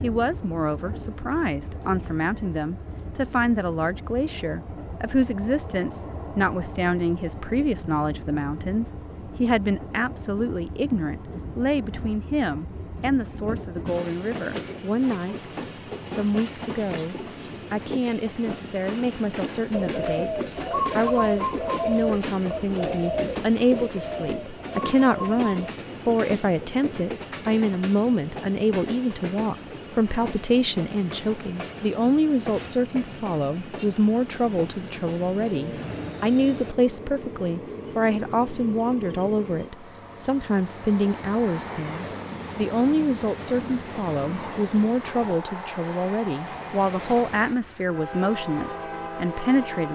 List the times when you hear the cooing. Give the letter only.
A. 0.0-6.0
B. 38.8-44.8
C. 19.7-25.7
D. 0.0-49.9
C.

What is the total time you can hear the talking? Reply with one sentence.
The talking can be heard for 50 seconds in total.